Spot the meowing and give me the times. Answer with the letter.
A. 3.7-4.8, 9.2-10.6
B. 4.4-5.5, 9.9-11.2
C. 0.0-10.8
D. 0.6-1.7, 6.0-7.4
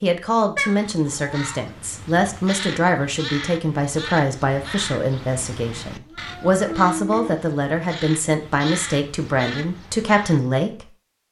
D.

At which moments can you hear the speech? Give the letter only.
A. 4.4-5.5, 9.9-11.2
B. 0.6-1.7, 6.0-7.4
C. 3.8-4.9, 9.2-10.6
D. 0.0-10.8
D.